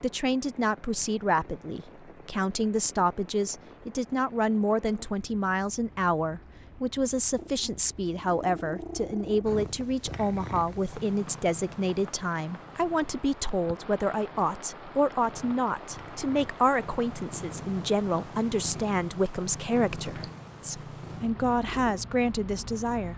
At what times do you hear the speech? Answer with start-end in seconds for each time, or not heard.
0.0-23.1.